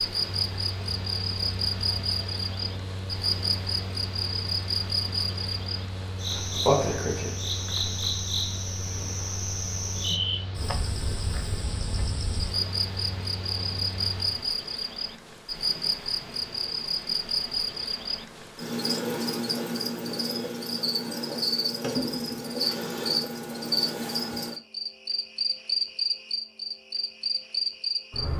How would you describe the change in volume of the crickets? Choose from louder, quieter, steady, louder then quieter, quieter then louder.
steady.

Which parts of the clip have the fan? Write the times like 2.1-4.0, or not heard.
0.0-14.4.